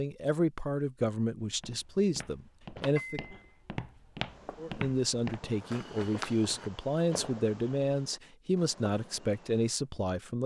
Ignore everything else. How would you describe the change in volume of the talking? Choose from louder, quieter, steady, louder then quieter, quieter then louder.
steady.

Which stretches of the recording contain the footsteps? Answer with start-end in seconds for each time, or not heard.
1.4-6.7.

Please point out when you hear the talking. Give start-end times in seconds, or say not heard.
0.0-3.2, 4.5-10.4.